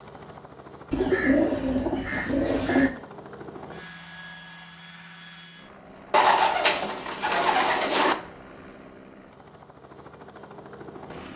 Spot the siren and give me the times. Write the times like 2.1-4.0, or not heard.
not heard.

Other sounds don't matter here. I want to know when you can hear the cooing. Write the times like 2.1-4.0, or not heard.
0.9-2.9, 6.1-8.2.